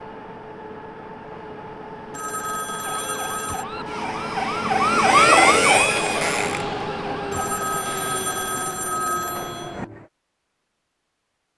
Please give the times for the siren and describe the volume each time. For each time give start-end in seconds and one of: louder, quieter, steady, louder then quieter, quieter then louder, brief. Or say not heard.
2.8-7.5 louder then quieter.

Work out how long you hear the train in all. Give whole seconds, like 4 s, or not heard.
10 s.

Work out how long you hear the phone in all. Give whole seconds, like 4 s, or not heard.
4 s.